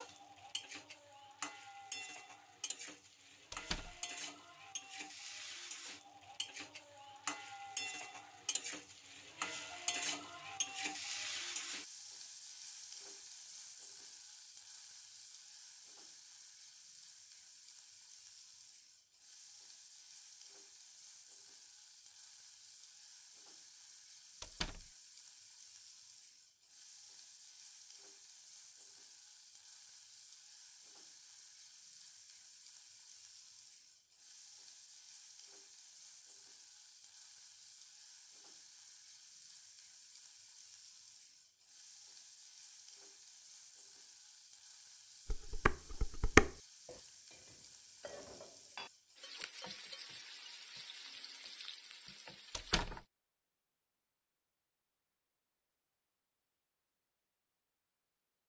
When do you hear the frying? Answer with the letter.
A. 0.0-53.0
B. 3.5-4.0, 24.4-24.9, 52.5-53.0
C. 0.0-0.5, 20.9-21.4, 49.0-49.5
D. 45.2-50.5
A.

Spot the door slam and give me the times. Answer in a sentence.
You can hear the door slam from 3.5 to 4.0 s, from 24.4 to 24.9 s and from 52.5 to 53.0 s.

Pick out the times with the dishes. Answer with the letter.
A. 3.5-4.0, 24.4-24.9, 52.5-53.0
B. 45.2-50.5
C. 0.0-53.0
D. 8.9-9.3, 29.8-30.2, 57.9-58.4
B.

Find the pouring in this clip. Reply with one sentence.
You can't hear the pouring here.